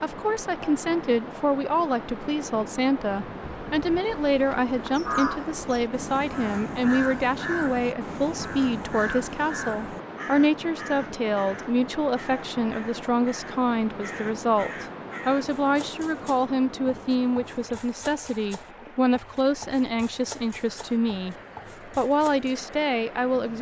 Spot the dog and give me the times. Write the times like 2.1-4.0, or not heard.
not heard.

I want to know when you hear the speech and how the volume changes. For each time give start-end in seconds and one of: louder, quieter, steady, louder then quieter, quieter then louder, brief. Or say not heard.
0.0-23.5 steady.